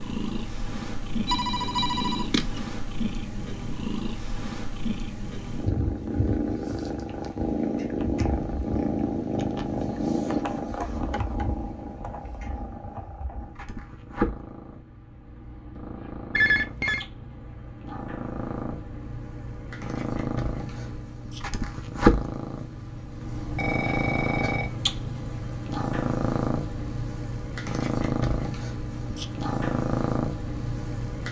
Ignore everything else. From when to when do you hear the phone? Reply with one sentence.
The phone can be heard from 1.2 to 2.6 s, from 16.4 to 17.1 s and from 23.4 to 24.7 s.